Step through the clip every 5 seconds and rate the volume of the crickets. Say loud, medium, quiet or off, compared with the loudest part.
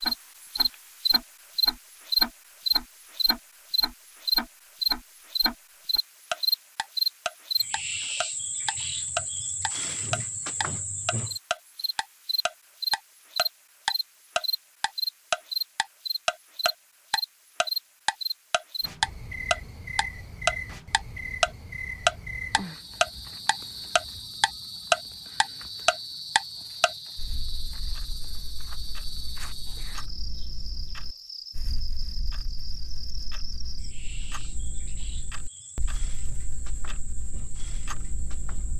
loud, medium, medium, medium, quiet, quiet, quiet, quiet.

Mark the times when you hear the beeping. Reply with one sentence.
You can't hear the beeping here.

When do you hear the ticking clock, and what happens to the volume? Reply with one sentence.
You can hear the ticking clock from 0.0 to 38.7 s, getting louder then quieter.